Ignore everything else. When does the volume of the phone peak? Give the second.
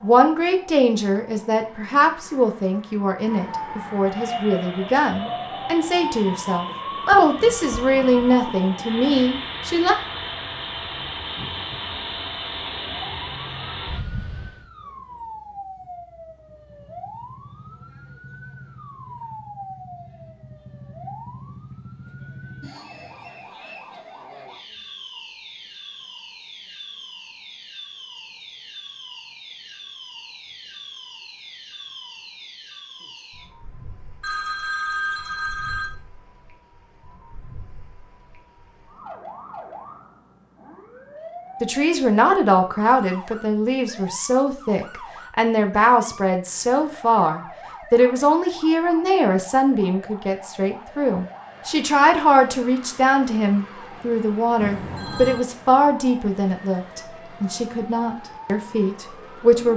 35 s.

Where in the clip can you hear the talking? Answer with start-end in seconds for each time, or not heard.
0.0-9.9, 41.6-59.7.